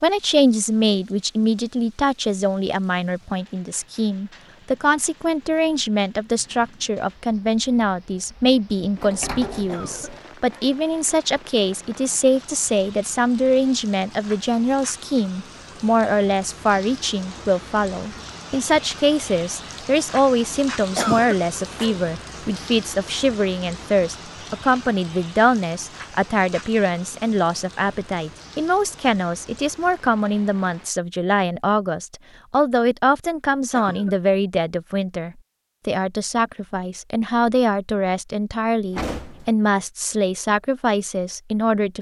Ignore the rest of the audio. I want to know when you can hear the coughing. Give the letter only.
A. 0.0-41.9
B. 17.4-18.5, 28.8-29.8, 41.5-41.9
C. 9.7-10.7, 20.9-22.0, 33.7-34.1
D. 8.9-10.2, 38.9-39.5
C.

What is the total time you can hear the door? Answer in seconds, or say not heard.
2 s.